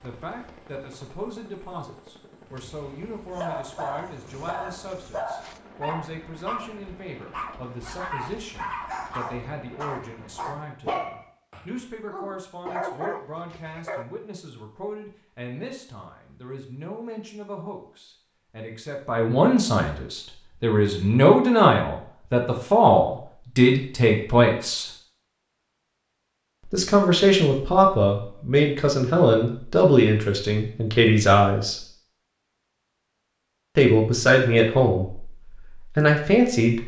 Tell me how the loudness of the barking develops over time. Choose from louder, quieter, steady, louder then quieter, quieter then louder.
steady.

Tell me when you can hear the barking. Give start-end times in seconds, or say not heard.
3.3-14.1.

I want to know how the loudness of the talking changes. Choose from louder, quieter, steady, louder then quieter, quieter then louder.
louder.